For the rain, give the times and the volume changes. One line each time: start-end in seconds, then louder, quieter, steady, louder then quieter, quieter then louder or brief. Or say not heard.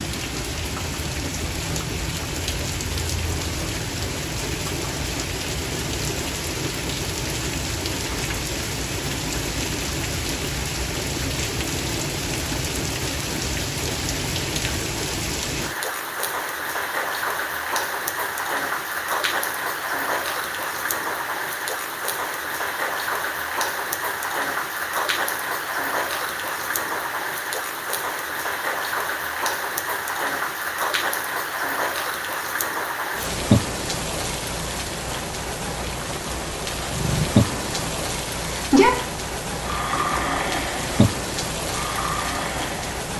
0.0-43.1 steady.